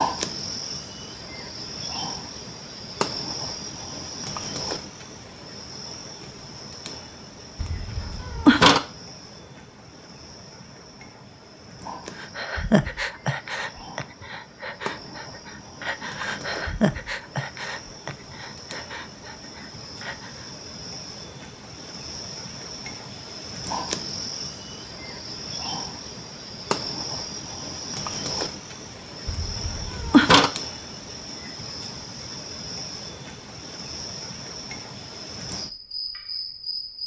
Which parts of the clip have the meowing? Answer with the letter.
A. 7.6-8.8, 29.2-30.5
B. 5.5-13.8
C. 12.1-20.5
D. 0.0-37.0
A.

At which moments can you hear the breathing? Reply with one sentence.
You can hear the breathing from 12.1 to 20.5 s.